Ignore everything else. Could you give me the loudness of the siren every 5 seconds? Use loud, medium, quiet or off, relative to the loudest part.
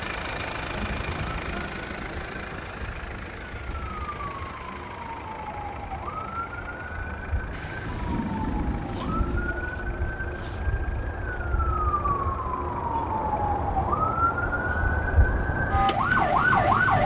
quiet, quiet, medium, loud.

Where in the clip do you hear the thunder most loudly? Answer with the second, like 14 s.
8 s.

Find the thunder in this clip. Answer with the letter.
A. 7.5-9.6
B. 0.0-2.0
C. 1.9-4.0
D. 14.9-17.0
A.